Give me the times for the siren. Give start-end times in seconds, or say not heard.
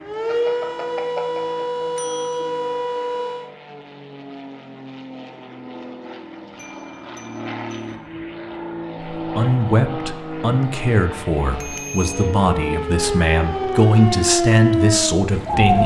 0.0-3.5, 12.1-15.8.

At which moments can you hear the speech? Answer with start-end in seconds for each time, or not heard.
9.2-15.8.